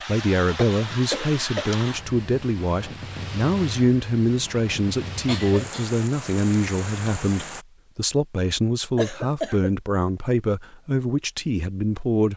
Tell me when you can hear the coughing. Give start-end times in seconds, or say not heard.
0.6-1.9, 5.2-5.9, 8.9-9.7.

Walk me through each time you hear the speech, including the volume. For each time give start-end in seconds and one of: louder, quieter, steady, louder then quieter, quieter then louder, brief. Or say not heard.
0.1-12.3 steady.